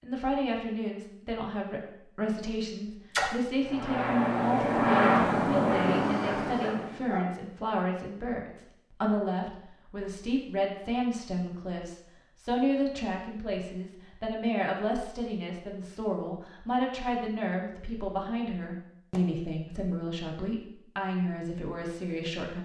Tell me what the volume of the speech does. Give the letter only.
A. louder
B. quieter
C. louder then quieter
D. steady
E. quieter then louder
D.